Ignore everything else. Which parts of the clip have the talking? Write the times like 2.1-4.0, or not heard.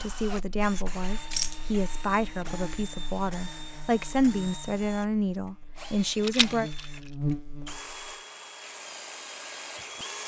0.0-6.7.